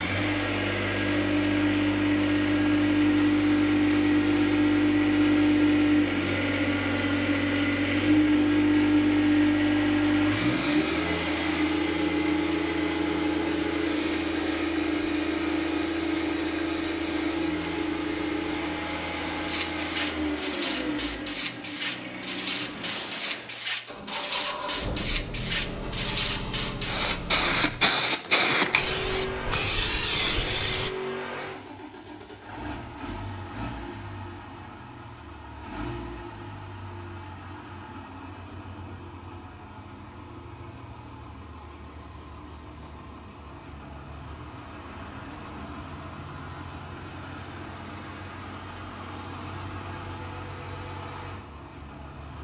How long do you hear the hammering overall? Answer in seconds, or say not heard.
not heard.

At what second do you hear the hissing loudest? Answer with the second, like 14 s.
28 s.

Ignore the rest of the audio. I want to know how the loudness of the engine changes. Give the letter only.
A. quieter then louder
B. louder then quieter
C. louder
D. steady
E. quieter
E.